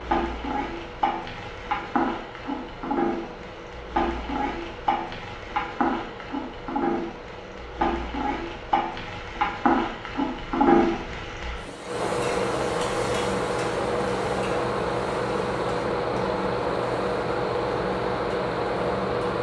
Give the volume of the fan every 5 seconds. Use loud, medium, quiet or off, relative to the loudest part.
quiet, quiet, loud, loud.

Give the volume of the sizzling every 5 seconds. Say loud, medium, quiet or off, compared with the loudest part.
loud, loud, loud, quiet.